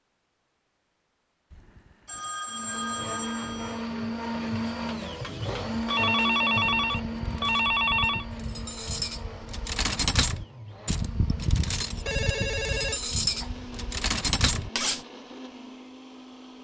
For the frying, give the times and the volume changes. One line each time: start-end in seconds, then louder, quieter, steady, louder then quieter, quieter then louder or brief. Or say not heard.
not heard.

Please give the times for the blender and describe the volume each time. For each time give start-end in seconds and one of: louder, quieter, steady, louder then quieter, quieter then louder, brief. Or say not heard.
2.5-16.5 quieter.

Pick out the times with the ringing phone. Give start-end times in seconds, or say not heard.
1.5-3.9, 5.9-8.2, 12.1-13.5.